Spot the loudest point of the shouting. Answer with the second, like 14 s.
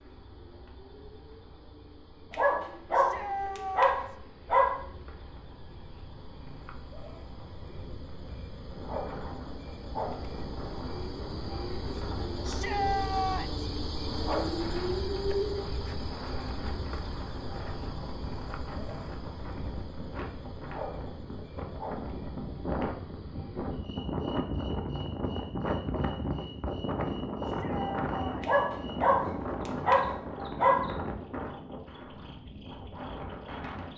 13 s.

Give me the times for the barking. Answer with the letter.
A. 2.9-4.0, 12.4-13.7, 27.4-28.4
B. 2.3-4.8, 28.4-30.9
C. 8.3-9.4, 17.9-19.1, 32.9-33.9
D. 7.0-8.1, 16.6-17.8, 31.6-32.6
B.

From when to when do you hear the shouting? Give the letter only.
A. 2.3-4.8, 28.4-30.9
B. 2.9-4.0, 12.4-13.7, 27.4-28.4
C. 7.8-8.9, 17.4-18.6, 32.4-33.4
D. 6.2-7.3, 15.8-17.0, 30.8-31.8
B.